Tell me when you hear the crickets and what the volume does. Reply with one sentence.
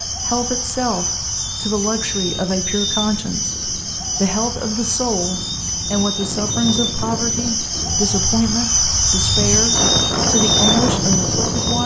You can hear the crickets from 0.0 to 11.8 s, getting louder.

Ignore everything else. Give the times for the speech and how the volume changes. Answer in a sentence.
The speech can be heard from 0.1 to 11.8 s, at a steady volume.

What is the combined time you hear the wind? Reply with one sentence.
The wind can be heard for 12 seconds in total.